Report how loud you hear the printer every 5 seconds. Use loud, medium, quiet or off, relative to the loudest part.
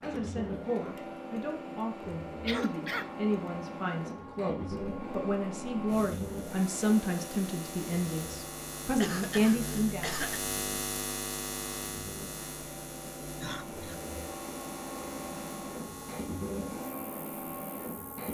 loud, loud, medium, loud.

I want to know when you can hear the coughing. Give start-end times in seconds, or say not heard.
2.5-3.1, 9.0-10.4, 13.4-14.1.